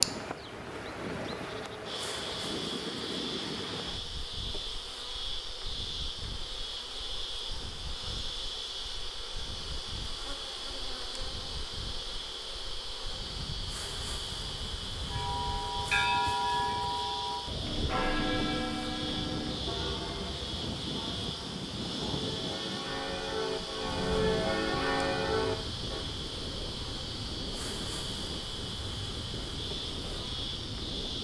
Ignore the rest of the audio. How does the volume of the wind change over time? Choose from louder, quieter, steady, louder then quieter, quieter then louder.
quieter then louder.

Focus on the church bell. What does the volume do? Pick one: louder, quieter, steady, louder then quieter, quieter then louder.
quieter then louder.